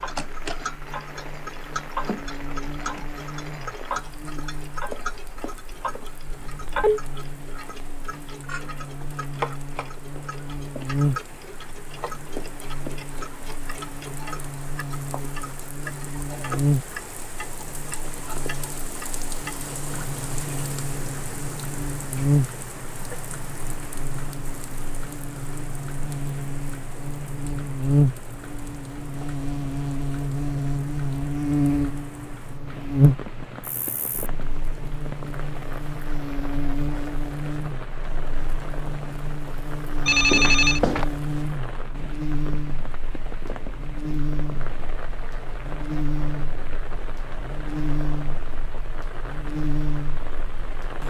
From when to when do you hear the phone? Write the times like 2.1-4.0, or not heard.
6.5-7.0, 40.0-41.0.